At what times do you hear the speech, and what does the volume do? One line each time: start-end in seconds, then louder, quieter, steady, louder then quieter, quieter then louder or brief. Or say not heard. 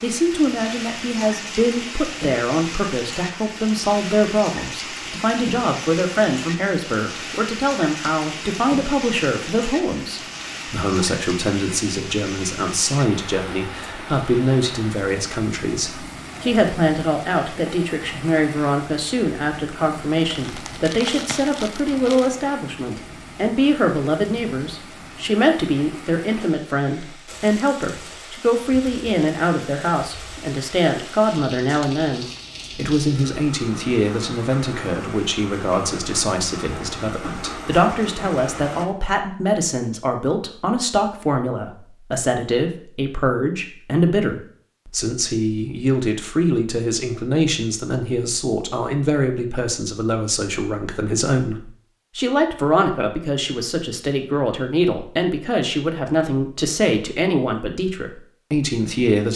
0.0-59.3 steady.